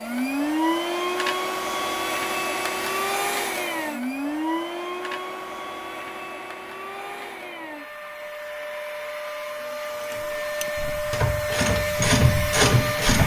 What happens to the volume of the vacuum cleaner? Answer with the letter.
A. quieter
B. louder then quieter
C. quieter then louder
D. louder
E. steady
C.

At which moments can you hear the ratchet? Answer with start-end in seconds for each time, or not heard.
10.0-13.2.